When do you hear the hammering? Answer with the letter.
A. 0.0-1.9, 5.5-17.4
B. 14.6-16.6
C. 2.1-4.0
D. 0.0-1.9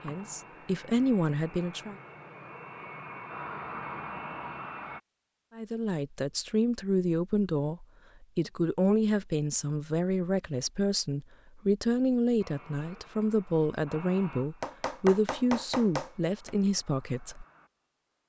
B.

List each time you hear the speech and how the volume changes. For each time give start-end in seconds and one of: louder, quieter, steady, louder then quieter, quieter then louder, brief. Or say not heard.
0.0-1.9 brief
5.5-17.4 steady.